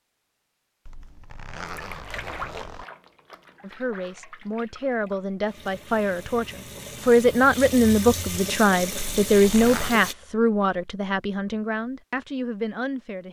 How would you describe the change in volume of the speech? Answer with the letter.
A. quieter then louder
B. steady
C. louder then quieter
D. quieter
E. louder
C.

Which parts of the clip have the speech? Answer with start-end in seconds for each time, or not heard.
3.6-13.2.